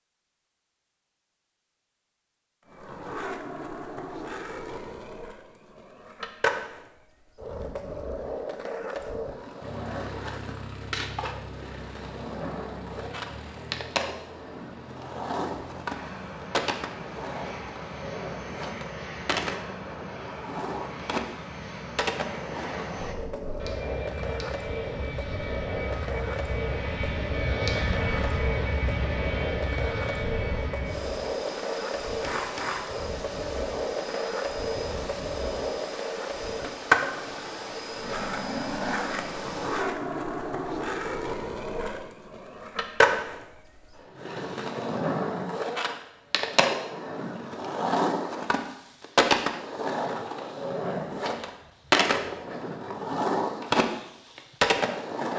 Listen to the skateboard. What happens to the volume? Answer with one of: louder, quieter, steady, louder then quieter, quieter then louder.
louder.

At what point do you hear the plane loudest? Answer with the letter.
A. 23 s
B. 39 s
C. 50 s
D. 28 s
D.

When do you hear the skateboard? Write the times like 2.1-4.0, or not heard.
2.6-55.3.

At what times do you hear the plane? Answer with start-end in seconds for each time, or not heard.
9.6-39.9.